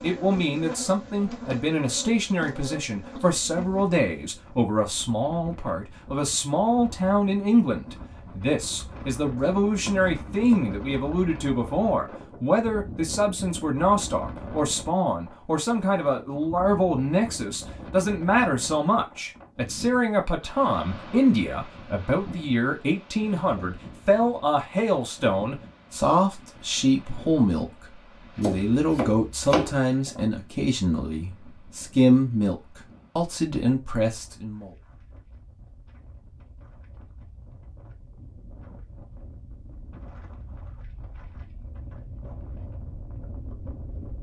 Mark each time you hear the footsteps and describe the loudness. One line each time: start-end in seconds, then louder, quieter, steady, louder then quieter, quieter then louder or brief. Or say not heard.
not heard.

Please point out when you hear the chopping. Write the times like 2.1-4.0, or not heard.
9.3-10.8, 28.4-29.8.